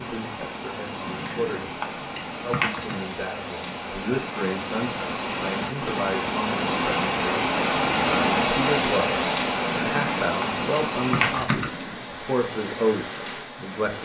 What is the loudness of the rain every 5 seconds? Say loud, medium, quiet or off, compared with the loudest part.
medium, loud, medium.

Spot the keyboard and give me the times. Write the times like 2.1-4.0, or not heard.
1.1-3.0, 9.7-12.1.